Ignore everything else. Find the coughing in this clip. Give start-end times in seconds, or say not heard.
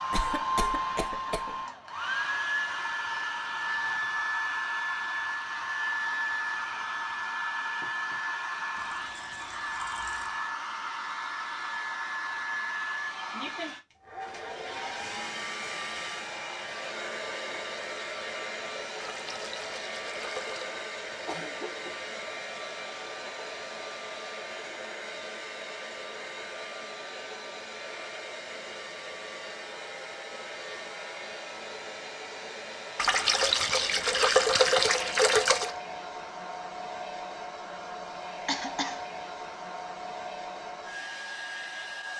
0.1-1.6, 21.1-22.2, 38.5-39.0.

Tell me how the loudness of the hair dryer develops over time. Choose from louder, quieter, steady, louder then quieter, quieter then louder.
quieter.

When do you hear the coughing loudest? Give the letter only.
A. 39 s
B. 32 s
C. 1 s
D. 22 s
A.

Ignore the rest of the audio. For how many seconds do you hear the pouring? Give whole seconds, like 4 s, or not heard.
6 s.